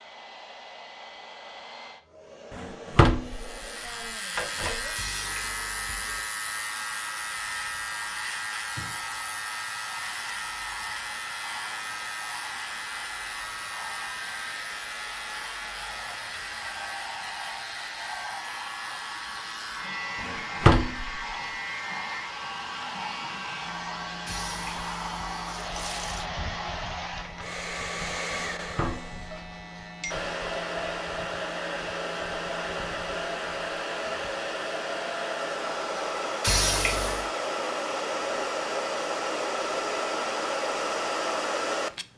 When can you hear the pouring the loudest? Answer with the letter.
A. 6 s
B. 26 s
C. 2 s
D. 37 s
D.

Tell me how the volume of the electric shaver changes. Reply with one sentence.
The volume of the electric shaver goes down.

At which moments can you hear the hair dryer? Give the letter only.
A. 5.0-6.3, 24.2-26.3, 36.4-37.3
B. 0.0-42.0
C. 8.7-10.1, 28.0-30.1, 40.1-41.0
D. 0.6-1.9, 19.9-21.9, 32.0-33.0
B.